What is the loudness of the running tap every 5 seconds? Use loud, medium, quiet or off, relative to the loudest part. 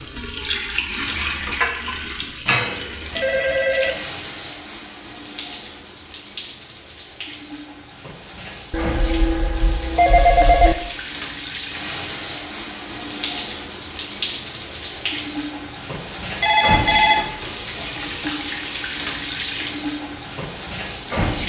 loud, medium, loud, loud, loud.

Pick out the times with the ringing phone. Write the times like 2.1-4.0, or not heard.
2.5-4.0, 8.7-10.8, 16.4-17.3.